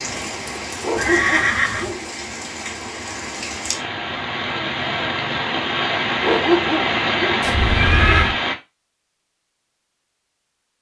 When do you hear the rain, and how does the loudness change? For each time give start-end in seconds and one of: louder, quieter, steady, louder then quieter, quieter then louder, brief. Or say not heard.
0.0-8.6 louder.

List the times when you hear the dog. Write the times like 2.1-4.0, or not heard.
0.8-2.1, 6.2-7.5.